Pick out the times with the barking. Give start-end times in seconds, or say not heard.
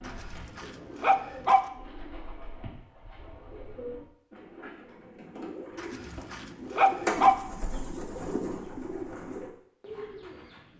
0.1-1.6, 5.8-7.3.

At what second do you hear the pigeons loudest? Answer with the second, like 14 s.
7 s.